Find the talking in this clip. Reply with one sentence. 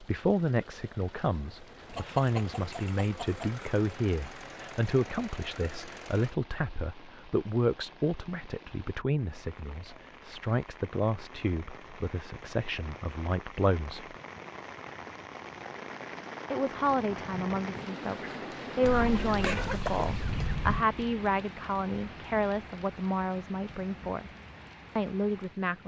The talking can be heard from 0.0 to 14.2 s, from 16.5 to 24.3 s and from 24.9 to 25.8 s.